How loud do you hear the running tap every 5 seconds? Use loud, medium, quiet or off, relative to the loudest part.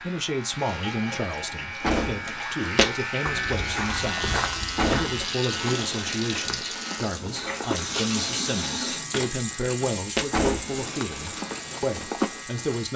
medium, loud, medium.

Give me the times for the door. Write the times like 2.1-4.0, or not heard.
1.8-2.4, 4.8-5.2, 10.3-10.9.